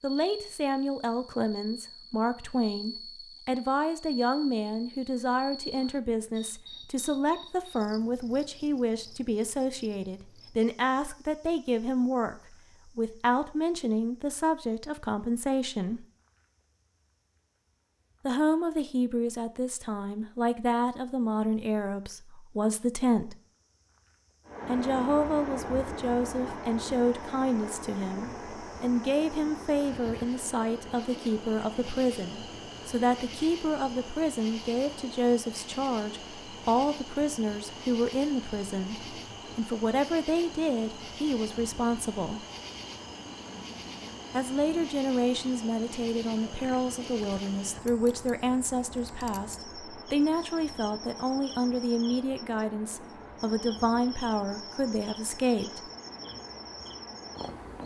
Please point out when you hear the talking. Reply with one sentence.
The talking can be heard from 0.0 to 16.1 s, from 18.2 to 23.4 s, from 24.6 to 42.5 s and from 44.3 to 55.9 s.